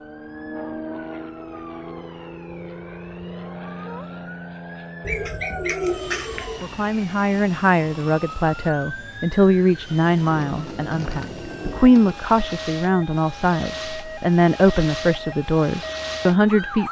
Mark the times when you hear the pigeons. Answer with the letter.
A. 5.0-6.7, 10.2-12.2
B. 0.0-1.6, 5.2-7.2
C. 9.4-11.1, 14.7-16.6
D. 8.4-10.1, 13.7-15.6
A.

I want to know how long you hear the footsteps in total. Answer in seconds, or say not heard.
not heard.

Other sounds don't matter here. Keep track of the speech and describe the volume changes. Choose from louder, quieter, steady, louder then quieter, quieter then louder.
steady.